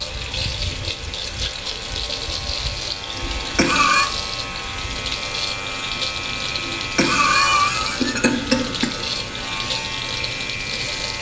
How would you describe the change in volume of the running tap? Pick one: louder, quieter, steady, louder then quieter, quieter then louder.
steady.